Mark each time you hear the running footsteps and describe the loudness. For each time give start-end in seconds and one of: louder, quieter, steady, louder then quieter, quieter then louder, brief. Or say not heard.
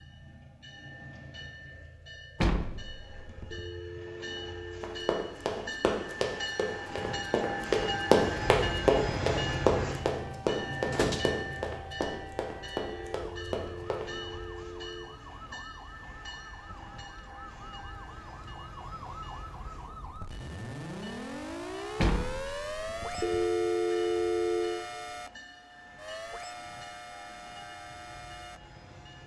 4.8-14.1 louder then quieter.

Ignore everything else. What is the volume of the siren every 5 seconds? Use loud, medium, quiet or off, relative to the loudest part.
off, off, medium, medium, loud, medium.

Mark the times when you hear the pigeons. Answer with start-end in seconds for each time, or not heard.
not heard.